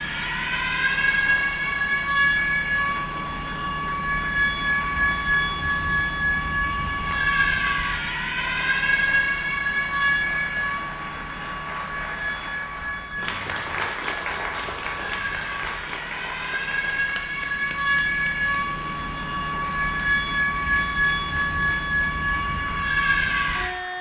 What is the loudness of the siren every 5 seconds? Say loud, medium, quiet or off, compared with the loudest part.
loud, loud, medium, loud, loud.